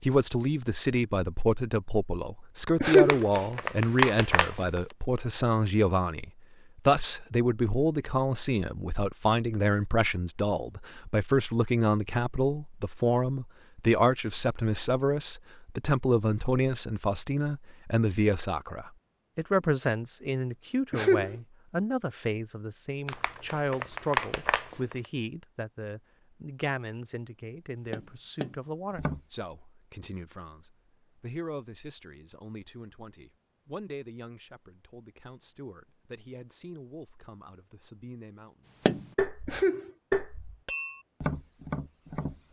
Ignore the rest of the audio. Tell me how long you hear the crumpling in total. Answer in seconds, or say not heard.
4 s.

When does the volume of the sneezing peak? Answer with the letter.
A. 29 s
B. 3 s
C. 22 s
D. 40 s
B.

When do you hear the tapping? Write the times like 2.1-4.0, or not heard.
27.9-29.2, 38.9-42.4.